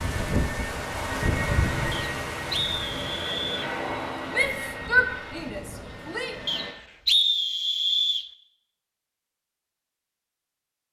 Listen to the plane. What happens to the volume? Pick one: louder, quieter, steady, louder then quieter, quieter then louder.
quieter.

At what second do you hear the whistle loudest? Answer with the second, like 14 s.
7 s.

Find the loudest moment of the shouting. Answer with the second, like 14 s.
5 s.